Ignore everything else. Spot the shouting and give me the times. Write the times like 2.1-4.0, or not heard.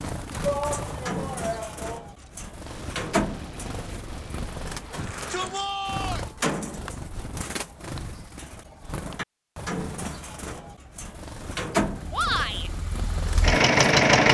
0.4-2.0, 4.9-6.2, 12.1-12.7.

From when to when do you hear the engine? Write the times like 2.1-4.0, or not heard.
11.9-14.2.